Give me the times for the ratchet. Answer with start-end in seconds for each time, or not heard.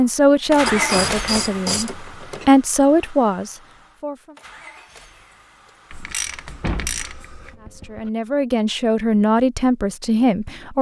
0.7-2.5, 5.9-7.5.